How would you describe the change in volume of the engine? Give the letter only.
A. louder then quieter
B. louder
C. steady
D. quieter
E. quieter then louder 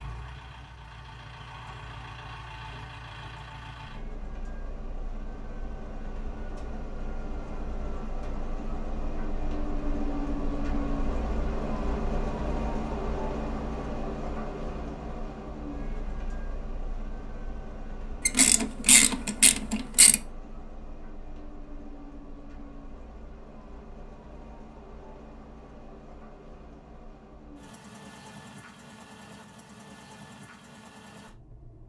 A.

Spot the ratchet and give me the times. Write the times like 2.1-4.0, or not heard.
18.2-20.2.